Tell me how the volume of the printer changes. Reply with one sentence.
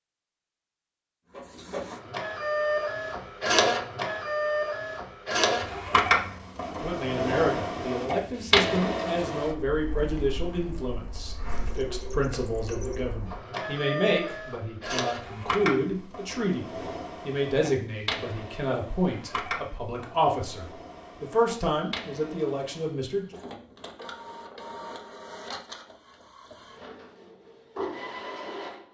The loudness of the printer goes down.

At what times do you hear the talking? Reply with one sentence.
You can hear the talking from 6.7 to 23.4 s.